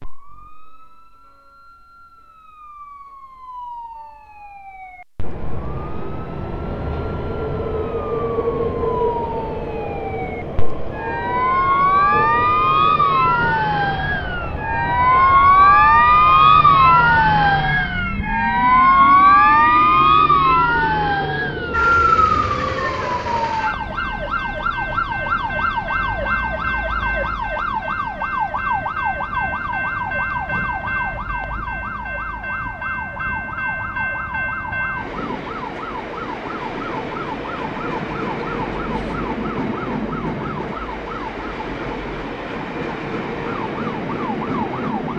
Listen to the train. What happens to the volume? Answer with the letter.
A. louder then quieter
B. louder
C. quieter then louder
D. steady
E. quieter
D.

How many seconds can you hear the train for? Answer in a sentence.
The train can be heard for 40 seconds in total.